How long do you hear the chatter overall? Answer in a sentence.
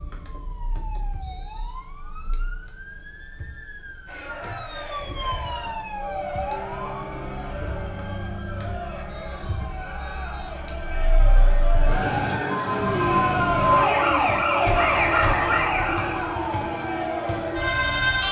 The chatter can be heard for 14 seconds in total.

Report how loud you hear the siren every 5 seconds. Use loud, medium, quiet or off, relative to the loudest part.
quiet, medium, loud, loud.